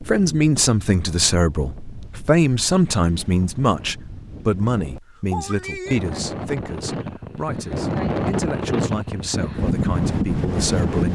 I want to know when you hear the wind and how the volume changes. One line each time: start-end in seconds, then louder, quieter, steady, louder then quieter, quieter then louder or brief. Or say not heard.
0.0-11.1 louder.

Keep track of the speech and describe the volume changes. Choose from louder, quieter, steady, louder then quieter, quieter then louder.
quieter.